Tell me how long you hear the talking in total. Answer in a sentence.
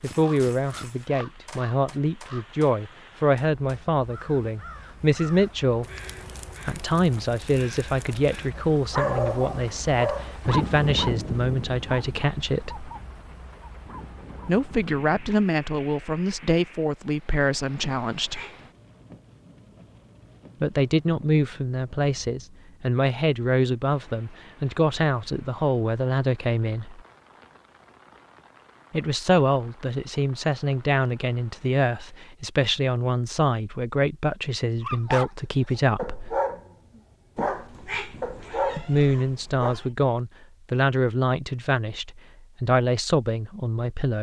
You can hear the talking for 35 seconds altogether.